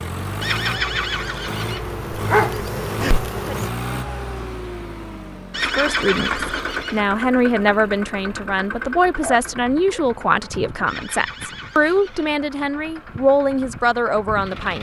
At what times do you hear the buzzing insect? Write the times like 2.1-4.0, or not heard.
0.0-3.7.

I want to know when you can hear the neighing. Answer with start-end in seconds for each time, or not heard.
0.4-1.8, 5.5-7.0, 10.8-12.3.